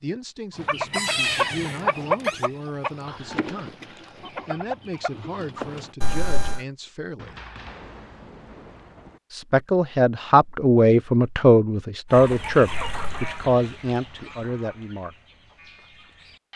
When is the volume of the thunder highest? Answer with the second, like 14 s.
8 s.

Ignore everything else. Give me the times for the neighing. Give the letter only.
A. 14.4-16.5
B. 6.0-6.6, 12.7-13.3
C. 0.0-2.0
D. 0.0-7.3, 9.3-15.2
B.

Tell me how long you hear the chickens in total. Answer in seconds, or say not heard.
10 s.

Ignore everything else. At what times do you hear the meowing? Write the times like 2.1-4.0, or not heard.
not heard.